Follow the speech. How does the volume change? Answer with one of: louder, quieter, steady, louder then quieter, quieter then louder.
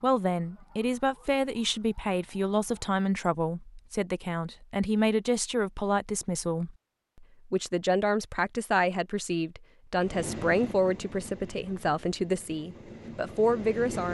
steady.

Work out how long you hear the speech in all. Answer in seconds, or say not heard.
14 s.